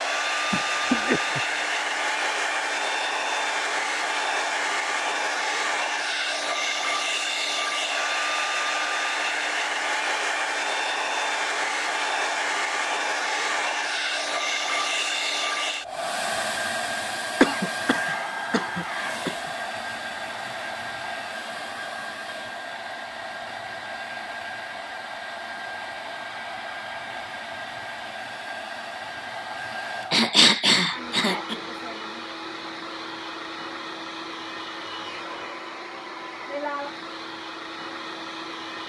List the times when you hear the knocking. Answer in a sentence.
The knocking can't be heard in this clip.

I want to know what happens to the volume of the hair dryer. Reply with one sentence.
The volume of the hair dryer goes down.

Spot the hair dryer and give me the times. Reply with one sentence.
You can hear the hair dryer from 0.0 to 38.8 s.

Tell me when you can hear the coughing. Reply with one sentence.
You can hear the coughing from 0.5 to 1.6 s, from 17.4 to 19.4 s and from 30.1 to 31.6 s.